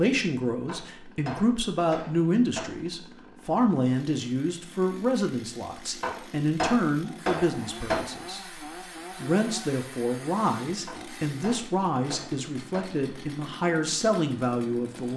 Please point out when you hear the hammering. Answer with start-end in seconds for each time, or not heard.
0.7-2.7, 6.0-8.0, 10.8-12.8.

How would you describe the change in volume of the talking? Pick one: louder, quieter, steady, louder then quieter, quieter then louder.
steady.